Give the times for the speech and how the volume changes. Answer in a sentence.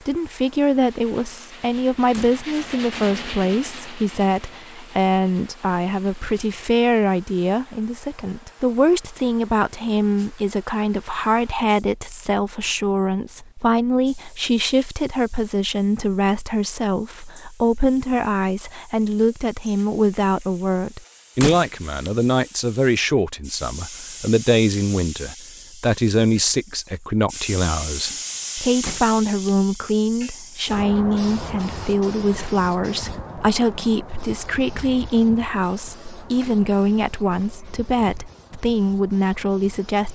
The speech can be heard from 0.1 to 40.0 s, at a steady volume.